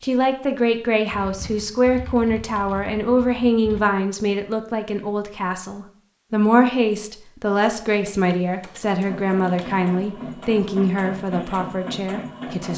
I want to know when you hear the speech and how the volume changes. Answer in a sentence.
You can hear the speech from 0.0 to 12.7 s, at a steady volume.